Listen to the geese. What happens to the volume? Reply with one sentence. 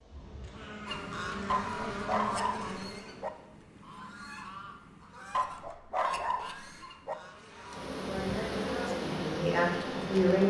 The loudness of the geese goes down.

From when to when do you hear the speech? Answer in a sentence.
The speech can be heard from 8.1 to 10.4 s.